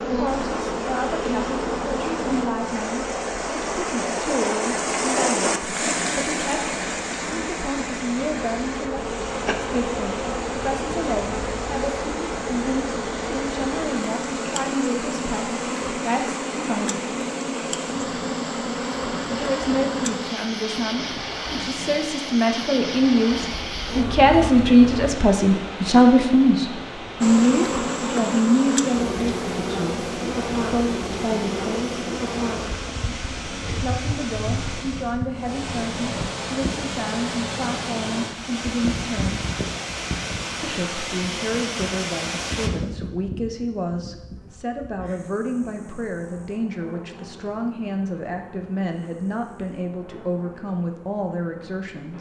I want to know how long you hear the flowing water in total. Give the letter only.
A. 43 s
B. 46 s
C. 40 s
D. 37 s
A.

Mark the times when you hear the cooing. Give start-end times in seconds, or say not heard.
not heard.